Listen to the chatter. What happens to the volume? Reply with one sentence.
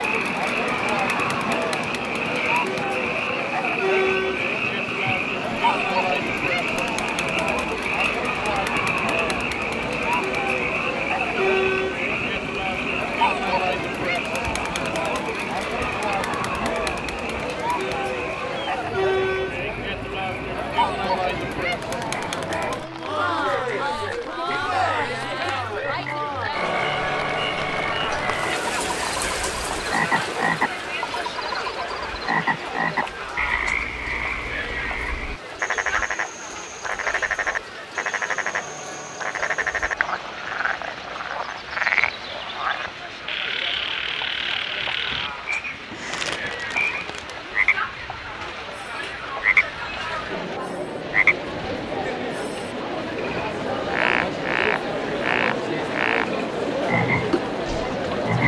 The volume of the chatter goes down, then up.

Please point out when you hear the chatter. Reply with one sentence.
The chatter can be heard from 0.0 to 58.4 s.